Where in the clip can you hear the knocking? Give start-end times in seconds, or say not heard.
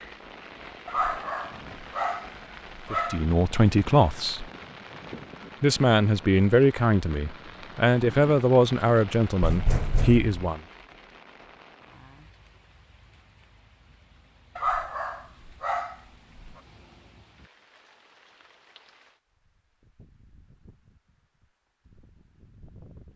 9.4-10.3.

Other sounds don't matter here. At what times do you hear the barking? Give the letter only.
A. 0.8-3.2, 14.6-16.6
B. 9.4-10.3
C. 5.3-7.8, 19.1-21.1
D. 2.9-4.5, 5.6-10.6
A.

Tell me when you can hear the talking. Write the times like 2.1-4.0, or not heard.
2.9-4.5, 5.6-10.6.